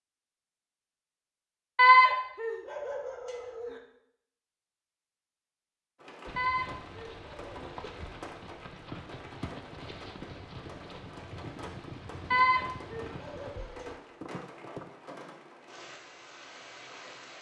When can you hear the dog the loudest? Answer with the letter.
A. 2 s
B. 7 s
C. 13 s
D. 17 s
A.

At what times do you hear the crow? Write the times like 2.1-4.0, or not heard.
not heard.